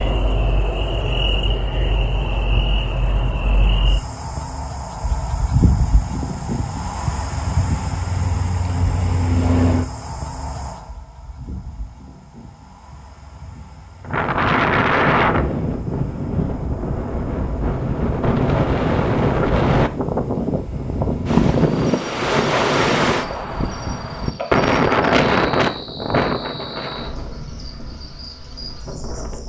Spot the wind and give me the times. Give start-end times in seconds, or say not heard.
14.1-29.4.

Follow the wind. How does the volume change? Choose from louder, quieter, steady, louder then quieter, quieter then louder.
quieter.